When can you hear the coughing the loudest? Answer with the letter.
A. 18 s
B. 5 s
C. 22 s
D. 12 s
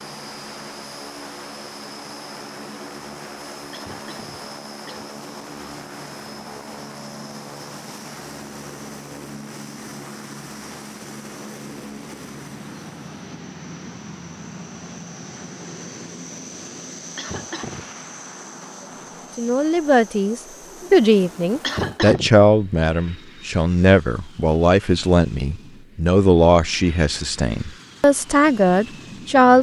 C.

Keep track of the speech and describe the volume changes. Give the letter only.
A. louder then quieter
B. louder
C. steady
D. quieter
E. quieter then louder
C.